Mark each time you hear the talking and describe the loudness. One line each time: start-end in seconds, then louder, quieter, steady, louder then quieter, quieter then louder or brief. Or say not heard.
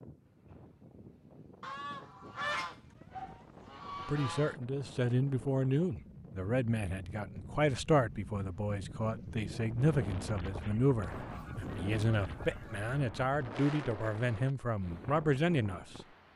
4.0-16.0 steady.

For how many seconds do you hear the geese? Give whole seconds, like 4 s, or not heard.
5 s.